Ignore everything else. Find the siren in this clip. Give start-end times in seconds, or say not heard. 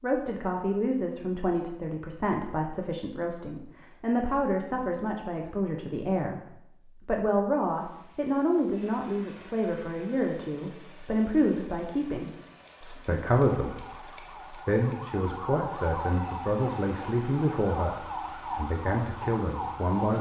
13.6-20.1.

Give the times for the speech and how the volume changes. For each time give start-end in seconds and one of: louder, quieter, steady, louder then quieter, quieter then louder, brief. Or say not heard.
0.0-20.1 steady.